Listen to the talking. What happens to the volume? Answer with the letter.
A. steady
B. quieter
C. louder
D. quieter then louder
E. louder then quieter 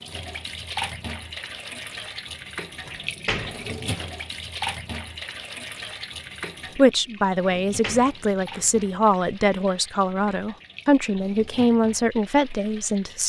A.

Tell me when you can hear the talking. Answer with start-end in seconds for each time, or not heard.
6.8-13.2.